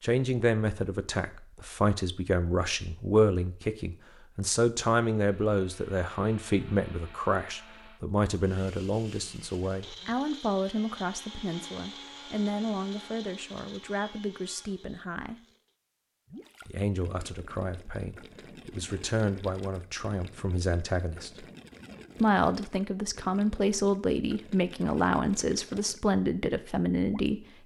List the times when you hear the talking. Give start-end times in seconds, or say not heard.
0.0-15.4, 16.6-21.4, 22.1-27.4.